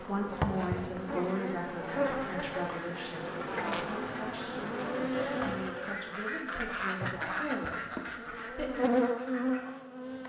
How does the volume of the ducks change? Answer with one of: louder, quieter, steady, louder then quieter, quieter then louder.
louder then quieter.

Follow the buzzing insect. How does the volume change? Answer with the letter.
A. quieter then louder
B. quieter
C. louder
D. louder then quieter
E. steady
A.